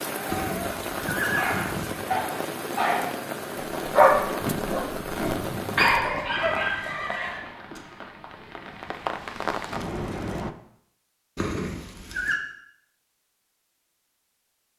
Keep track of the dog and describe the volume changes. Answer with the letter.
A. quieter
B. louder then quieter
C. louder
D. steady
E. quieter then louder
B.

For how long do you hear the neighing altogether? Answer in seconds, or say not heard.
4 s.